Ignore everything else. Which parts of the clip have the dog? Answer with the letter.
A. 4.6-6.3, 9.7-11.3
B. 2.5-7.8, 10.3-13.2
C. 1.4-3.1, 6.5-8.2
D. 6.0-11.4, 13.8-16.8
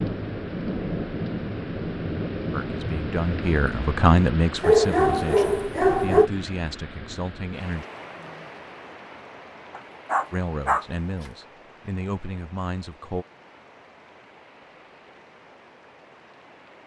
A.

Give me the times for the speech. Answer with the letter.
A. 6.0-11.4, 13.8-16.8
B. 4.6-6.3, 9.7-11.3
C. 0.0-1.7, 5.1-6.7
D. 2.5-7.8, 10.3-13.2
D.